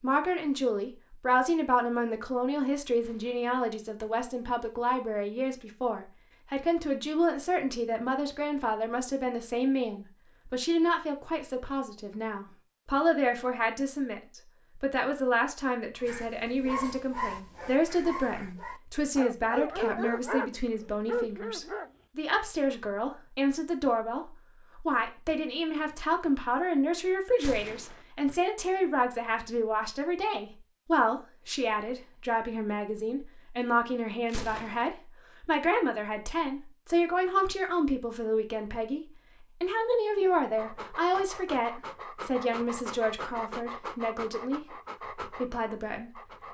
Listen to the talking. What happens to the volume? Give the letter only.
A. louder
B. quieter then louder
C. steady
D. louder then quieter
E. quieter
C.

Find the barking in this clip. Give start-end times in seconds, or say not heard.
16.0-21.9, 40.5-46.4.